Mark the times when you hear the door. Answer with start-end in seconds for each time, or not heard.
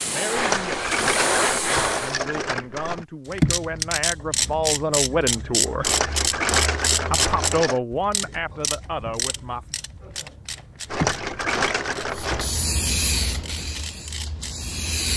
not heard.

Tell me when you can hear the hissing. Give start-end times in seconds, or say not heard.
0.0-2.1, 12.1-15.1.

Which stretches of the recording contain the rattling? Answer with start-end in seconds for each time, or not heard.
0.3-3.0, 5.8-7.8, 10.8-12.5.